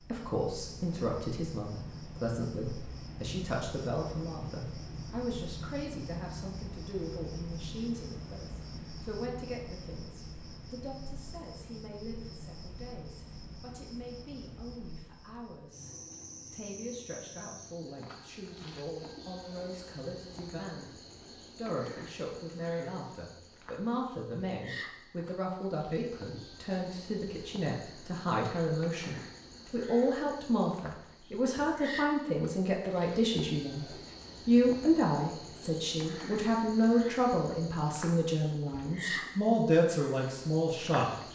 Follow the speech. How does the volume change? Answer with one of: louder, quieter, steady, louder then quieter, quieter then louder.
quieter then louder.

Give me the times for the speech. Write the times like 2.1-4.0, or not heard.
0.0-20.9, 21.6-41.1.